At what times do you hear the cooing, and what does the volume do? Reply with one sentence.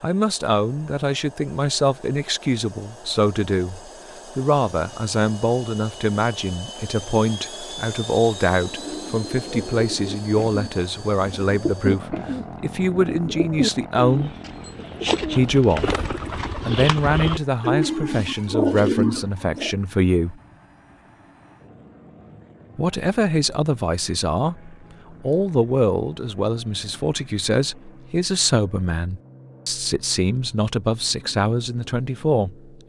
The cooing can be heard from 8.6 to 19.7 s, getting louder.